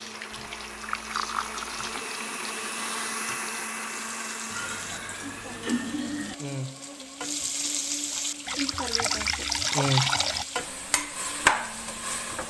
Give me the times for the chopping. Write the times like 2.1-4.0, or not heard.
not heard.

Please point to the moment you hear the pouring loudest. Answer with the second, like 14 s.
10 s.